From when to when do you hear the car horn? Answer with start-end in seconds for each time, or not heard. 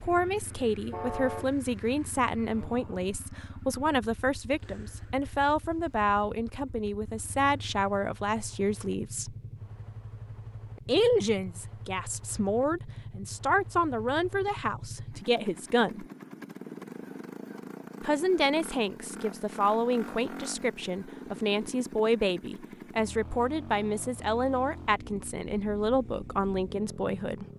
0.9-1.6.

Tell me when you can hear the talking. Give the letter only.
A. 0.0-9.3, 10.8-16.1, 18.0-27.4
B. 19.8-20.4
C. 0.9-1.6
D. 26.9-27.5
A.